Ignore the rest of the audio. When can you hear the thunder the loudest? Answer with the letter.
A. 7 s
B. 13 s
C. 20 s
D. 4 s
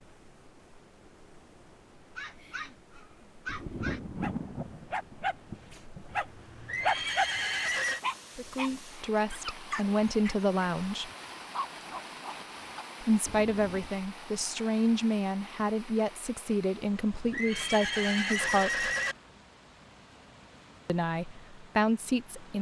D.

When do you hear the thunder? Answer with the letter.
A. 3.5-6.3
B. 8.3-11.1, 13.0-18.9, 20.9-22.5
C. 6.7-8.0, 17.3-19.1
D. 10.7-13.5
A.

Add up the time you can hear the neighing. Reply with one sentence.
You can hear the neighing for 3 seconds altogether.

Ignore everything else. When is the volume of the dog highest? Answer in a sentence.
The volume of the dog peaks at 7 seconds.